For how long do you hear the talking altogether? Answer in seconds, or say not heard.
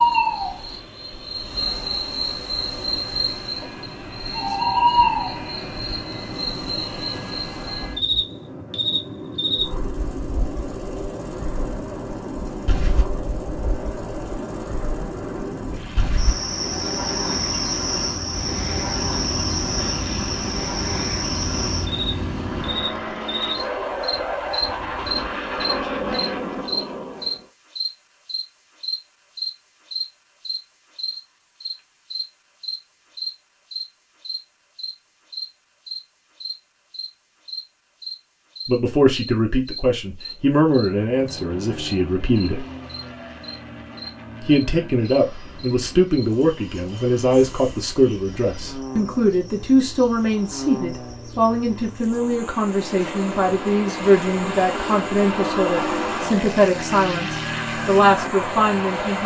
19 s.